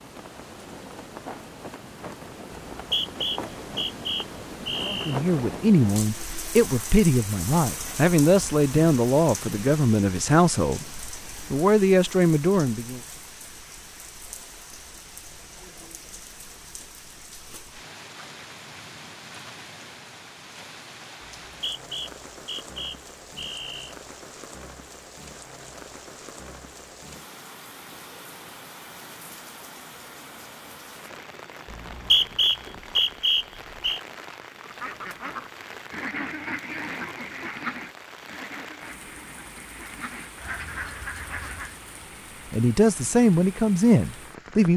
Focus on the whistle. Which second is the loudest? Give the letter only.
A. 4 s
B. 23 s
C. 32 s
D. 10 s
C.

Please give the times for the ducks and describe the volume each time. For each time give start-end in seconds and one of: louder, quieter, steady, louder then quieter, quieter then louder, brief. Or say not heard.
34.6-41.8 quieter then louder.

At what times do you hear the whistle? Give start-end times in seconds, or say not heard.
2.8-5.2, 21.4-23.9, 31.7-34.0.